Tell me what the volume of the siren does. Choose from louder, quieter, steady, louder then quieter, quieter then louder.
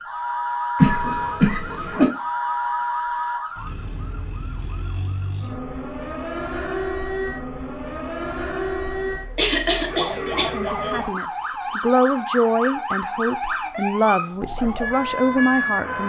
quieter then louder.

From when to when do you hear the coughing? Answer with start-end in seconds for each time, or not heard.
0.8-2.0, 9.3-10.5.